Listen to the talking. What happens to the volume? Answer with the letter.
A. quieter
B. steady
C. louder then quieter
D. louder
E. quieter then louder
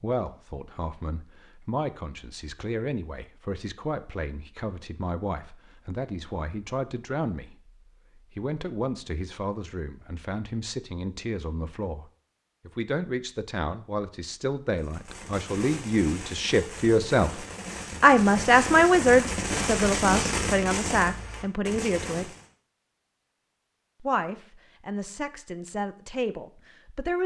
C.